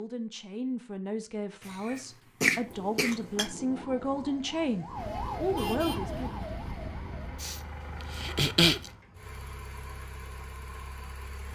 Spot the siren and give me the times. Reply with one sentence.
You can hear the siren from 3.6 to 7.5 s.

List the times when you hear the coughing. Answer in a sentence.
The coughing can be heard from 1.6 to 3.5 s and from 7.4 to 8.9 s.